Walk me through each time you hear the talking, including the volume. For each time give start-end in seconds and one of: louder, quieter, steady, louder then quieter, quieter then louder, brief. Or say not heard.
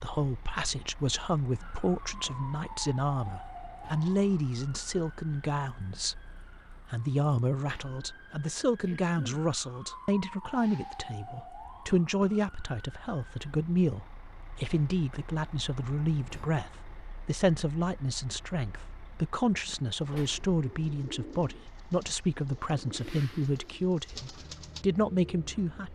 0.0-25.9 steady.